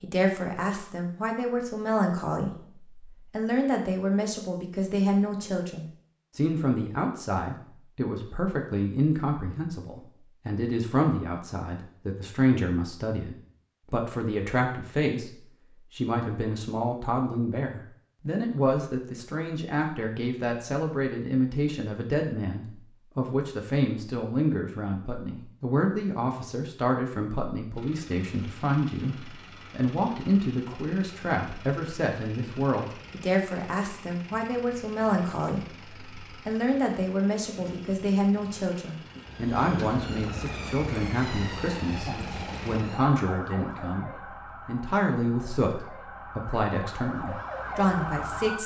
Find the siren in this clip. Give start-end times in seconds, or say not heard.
39.1-48.6.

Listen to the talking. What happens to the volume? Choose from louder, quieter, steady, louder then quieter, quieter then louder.
steady.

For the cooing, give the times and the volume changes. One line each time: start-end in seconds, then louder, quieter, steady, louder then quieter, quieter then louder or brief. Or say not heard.
not heard.